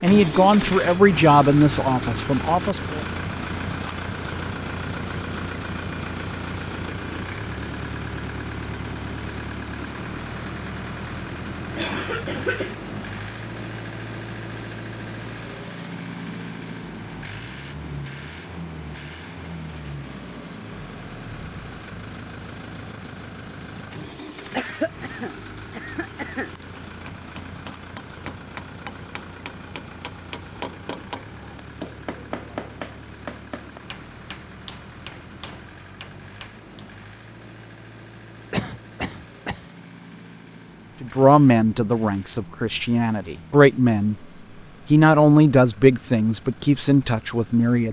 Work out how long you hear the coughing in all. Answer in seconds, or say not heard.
4 s.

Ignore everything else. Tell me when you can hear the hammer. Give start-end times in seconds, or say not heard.
26.9-36.9.